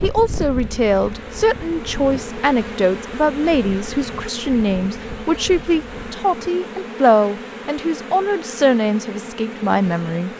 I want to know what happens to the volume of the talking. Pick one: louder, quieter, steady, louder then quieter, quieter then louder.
steady.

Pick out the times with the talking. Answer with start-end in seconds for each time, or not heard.
0.0-10.3.